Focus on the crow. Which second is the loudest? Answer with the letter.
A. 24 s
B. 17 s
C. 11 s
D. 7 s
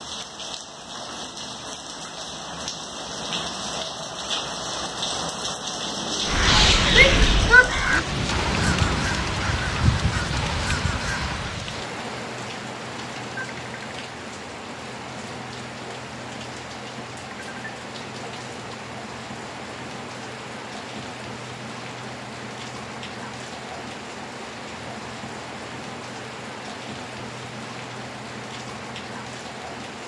D.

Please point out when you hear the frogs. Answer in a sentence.
You can't hear the frogs here.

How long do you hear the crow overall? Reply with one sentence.
You can hear the crow for 5 seconds altogether.